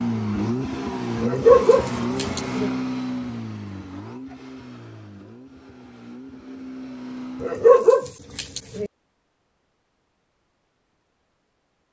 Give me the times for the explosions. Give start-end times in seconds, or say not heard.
not heard.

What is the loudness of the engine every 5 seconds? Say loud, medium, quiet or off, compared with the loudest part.
loud, medium, off.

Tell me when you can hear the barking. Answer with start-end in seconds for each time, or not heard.
1.2-2.7, 7.4-8.9.